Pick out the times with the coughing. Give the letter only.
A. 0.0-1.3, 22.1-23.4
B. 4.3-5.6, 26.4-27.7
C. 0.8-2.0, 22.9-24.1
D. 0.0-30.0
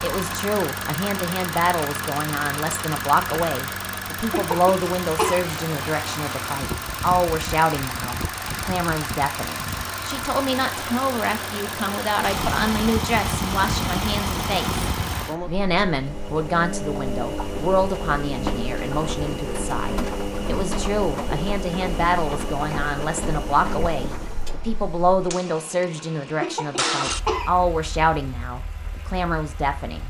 B.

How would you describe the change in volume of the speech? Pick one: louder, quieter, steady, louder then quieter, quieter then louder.
steady.